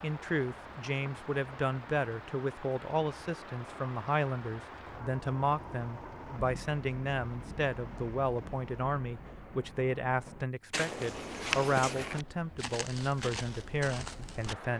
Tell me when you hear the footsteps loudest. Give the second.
12 s.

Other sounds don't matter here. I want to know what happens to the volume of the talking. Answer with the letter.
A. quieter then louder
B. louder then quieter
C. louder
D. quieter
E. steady
E.